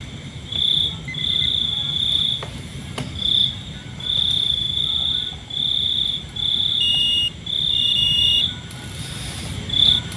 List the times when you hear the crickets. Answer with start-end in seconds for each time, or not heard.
0.0-10.1.